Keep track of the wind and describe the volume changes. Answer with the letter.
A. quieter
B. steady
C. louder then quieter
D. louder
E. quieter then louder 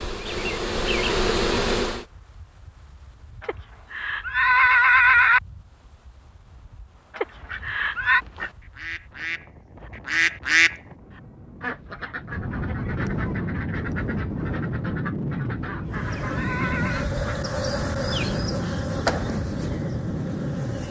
D.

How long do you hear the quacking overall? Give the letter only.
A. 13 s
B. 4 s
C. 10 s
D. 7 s
C.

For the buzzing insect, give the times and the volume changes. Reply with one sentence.
The buzzing insect can be heard briefly from 0.0 to 2.0 s; and from 15.8 to 20.8 s, getting louder then quieter.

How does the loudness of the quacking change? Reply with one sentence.
The loudness of the quacking goes up, then down.